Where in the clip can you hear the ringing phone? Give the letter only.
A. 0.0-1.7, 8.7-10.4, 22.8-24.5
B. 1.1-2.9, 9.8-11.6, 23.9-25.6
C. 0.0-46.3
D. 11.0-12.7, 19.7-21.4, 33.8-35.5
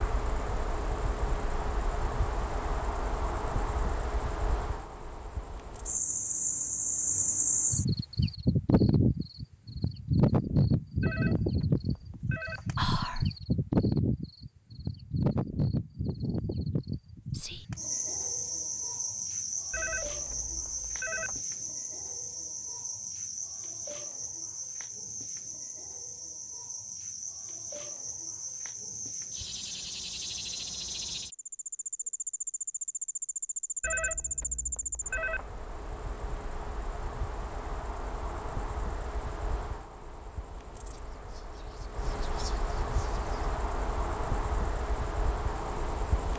D.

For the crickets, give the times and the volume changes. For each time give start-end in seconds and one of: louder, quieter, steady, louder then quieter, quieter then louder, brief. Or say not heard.
0.0-46.3 quieter.